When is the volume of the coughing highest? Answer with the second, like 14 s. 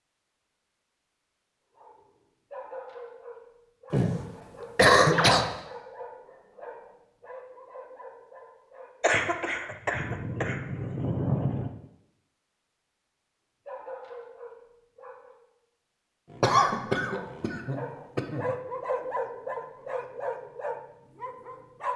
5 s.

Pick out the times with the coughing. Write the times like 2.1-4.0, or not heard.
3.9-5.5, 9.0-11.7, 16.4-18.4.